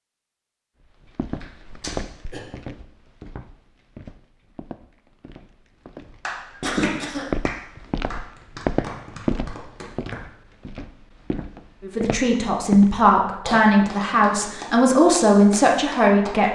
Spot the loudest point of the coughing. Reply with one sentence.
The volume of the coughing peaks at 7 seconds.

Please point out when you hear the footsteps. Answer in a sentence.
The footsteps can be heard from 1.1 to 12.9 s.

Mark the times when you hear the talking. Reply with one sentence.
The talking can be heard from 11.8 to 16.5 s.